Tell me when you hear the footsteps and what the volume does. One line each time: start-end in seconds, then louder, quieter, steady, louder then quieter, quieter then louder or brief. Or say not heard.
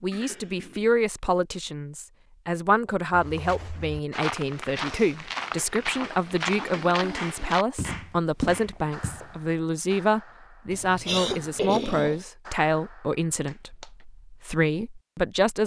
3.1-9.4 steady.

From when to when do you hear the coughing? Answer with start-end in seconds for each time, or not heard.
0.1-0.9, 5.8-7.6, 10.7-12.2.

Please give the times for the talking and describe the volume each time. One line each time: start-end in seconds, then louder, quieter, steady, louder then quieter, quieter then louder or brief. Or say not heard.
0.0-15.6 steady.